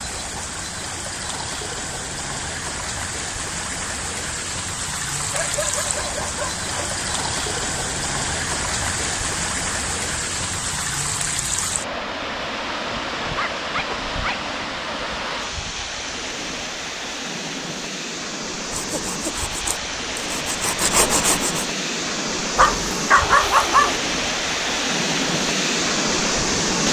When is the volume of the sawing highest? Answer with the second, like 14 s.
21 s.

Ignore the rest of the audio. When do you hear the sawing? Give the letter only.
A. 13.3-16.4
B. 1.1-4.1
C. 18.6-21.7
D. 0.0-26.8
C.